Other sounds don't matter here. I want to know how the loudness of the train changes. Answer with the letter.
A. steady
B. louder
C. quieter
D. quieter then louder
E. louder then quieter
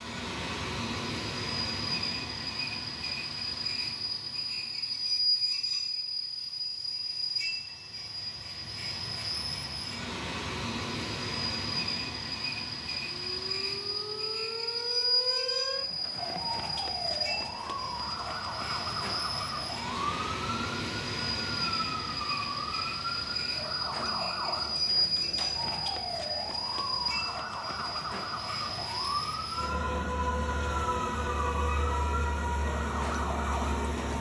A.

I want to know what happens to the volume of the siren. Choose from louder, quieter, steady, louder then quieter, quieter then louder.
steady.